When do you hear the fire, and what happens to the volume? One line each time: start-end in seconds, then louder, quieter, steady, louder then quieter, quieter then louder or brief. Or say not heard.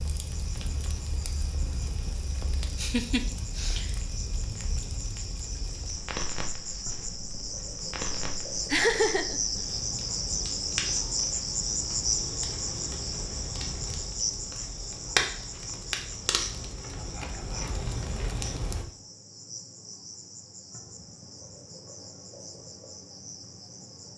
0.0-18.9 louder.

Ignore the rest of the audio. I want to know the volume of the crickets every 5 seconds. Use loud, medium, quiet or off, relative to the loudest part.
quiet, loud, loud, medium, quiet.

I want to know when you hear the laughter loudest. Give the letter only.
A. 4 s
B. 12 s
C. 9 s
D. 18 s
C.